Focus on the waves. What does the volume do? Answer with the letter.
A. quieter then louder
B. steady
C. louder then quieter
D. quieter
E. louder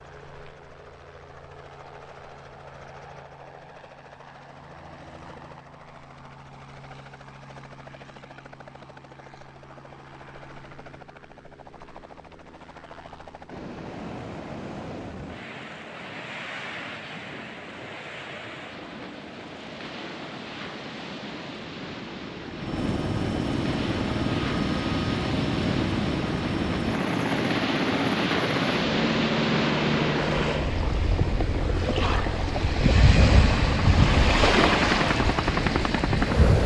E.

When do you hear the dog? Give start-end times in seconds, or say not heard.
not heard.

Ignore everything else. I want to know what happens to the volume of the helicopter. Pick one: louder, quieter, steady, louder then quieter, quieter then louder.
louder.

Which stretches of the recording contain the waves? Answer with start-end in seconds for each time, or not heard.
13.4-36.6.